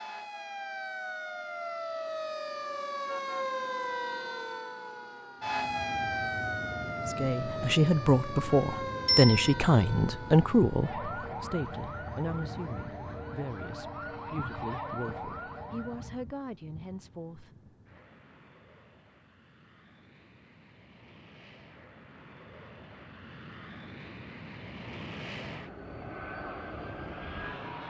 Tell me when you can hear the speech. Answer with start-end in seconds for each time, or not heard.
7.0-17.5.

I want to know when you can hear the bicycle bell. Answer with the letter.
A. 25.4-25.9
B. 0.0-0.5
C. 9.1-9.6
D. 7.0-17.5
C.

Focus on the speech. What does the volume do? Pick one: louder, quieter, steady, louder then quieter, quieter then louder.
quieter.